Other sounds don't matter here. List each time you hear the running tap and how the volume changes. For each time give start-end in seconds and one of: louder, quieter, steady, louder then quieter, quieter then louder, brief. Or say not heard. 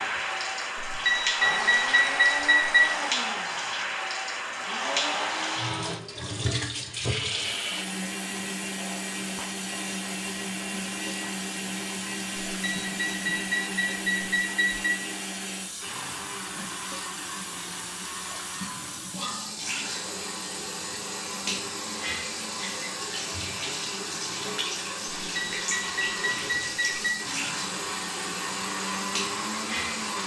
0.0-30.2 quieter then louder.